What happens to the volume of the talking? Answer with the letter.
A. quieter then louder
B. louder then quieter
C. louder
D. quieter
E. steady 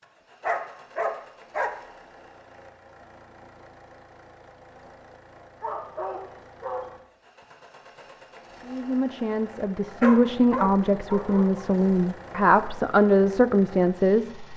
C.